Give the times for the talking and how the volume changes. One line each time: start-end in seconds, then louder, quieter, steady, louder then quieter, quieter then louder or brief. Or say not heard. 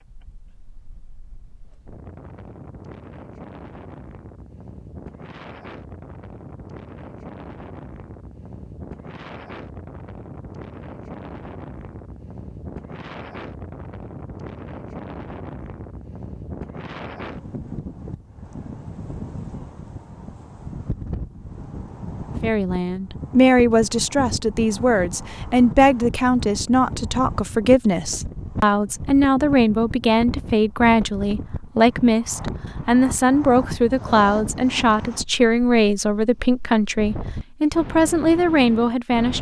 22.4-39.3 steady.